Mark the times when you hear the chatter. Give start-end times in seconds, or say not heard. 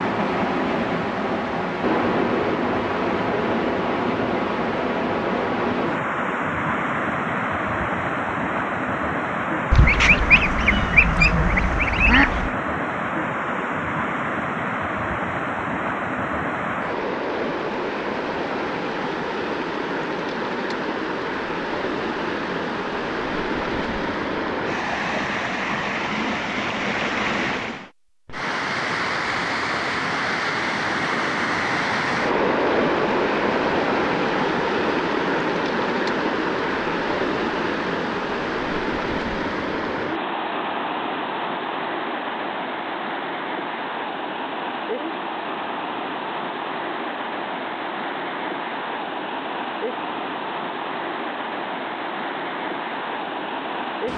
not heard.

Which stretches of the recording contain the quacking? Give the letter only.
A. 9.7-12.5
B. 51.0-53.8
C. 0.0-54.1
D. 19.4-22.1
A.